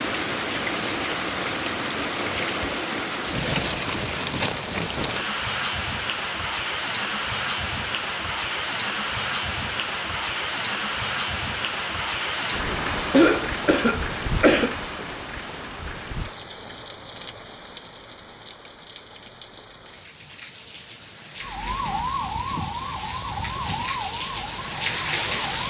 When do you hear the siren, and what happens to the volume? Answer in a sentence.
You can hear the siren from 21.4 to 25.6 s, getting quieter.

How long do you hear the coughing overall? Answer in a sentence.
You can hear the coughing for 2 seconds altogether.